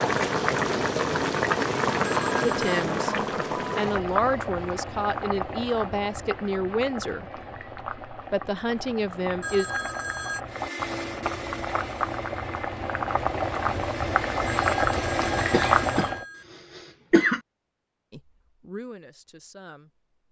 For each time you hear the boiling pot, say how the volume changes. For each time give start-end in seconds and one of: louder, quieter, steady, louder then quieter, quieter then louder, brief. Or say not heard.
0.0-16.2 quieter then louder.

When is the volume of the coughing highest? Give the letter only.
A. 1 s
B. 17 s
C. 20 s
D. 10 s
B.